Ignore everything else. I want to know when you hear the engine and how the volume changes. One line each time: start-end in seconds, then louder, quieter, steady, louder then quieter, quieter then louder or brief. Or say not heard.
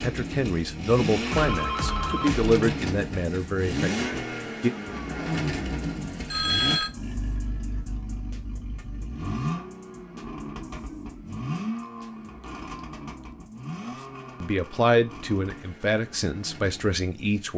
0.0-17.5 quieter.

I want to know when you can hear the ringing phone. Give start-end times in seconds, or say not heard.
1.3-2.7, 6.3-6.9, 11.8-13.2.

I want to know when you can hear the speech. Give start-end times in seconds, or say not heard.
0.0-4.7, 14.4-17.5.